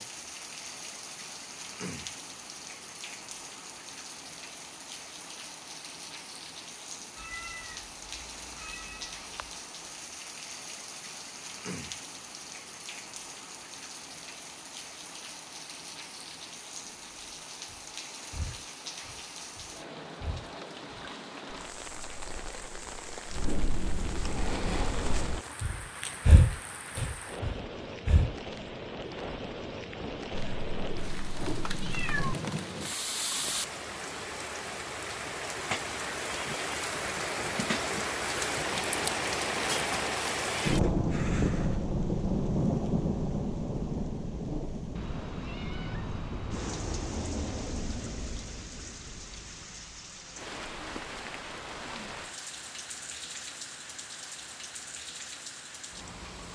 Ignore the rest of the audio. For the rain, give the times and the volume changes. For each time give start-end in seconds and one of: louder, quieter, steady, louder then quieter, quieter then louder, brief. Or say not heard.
0.0-56.5 louder then quieter.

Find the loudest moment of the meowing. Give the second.
32 s.